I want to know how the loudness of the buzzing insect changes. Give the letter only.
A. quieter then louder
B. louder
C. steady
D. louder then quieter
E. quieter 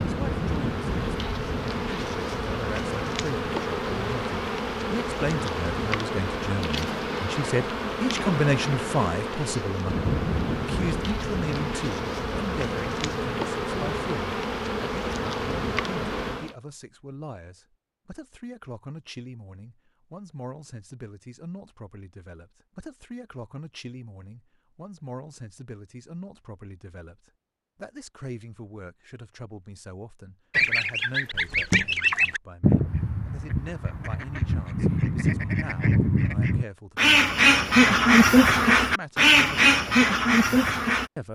C.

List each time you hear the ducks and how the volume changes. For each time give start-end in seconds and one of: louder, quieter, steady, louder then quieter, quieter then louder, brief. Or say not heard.
30.5-41.1 quieter then louder.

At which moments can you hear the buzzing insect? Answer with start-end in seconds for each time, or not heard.
0.0-16.6.